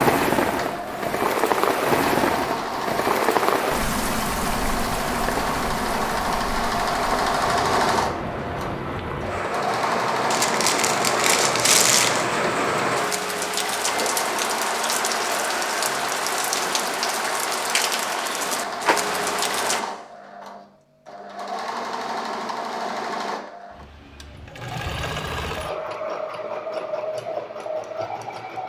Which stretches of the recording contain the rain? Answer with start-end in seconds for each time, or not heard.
0.0-19.9.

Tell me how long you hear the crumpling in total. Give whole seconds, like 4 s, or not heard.
2 s.